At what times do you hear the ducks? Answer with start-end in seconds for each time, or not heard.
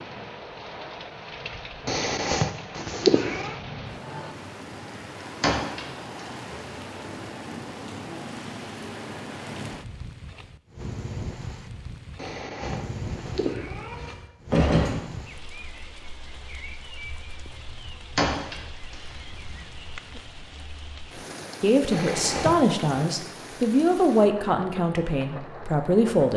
not heard.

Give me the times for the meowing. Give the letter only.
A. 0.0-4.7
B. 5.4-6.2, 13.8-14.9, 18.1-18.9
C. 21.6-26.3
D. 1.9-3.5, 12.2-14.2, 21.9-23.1
D.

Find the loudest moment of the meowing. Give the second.
3 s.